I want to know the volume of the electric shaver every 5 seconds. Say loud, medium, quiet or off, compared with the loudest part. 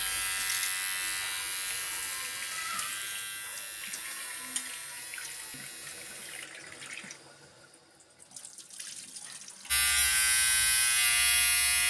medium, medium, loud.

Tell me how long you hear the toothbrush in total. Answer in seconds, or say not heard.
not heard.